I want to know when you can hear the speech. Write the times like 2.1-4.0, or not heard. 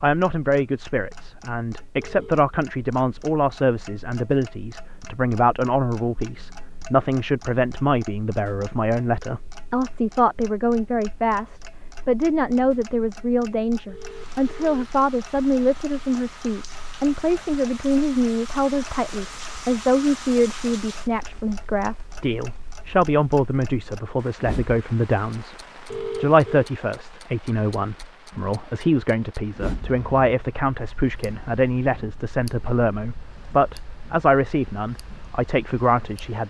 0.0-25.6, 26.1-36.4.